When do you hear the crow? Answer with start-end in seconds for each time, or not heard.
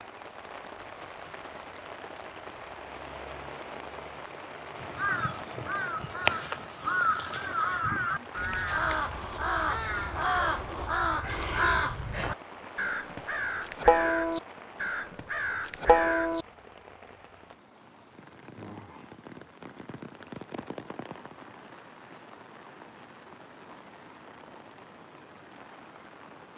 4.8-16.4.